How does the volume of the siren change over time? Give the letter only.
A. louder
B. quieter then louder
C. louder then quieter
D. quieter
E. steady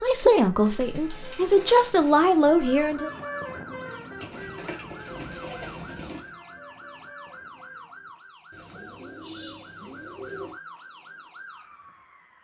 E.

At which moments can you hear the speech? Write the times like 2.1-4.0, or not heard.
0.0-3.1.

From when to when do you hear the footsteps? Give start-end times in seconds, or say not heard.
not heard.